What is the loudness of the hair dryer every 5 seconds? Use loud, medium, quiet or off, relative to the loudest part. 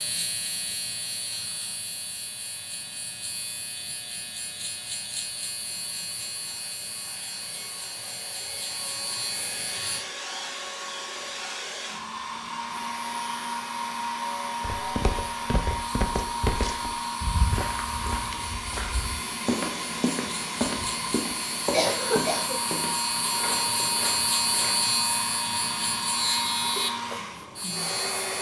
quiet, medium, loud, loud, loud, loud.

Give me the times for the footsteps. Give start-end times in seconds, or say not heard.
14.6-24.9.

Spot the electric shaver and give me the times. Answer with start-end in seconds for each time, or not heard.
0.0-10.1, 12.8-28.3.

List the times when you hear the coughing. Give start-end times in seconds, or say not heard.
20.8-22.6.